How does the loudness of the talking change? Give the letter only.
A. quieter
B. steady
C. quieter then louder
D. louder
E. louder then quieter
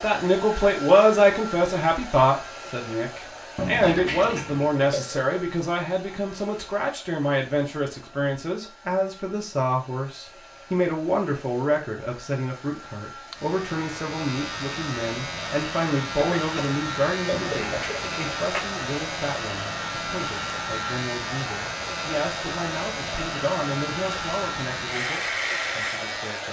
A.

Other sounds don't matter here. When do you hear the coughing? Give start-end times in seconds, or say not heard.
3.8-5.2, 16.1-18.0.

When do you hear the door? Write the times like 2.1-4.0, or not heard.
3.5-4.8, 17.3-18.6.